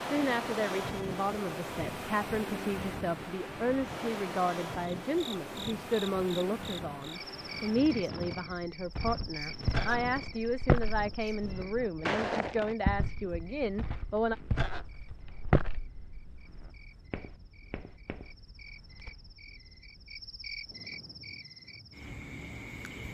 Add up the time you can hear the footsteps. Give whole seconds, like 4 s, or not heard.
11 s.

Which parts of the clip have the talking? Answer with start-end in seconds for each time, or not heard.
0.1-14.3.